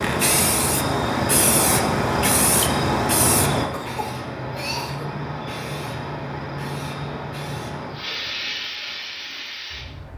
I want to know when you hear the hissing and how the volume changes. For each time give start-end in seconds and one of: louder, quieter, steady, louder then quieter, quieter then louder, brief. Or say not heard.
0.0-10.1 quieter.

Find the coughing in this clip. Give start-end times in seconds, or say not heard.
3.7-5.1.